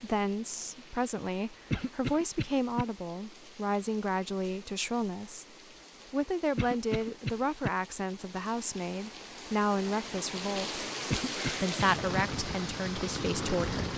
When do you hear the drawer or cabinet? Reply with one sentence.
You can't hear the drawer or cabinet here.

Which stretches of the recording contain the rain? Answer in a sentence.
You can hear the rain from 0.0 to 13.9 s.